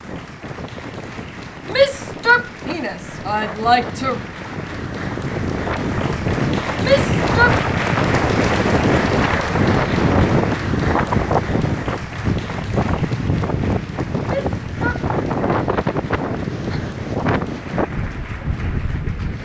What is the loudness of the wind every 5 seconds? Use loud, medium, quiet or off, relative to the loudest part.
quiet, loud, loud, loud.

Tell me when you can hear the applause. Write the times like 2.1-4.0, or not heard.
0.0-19.4.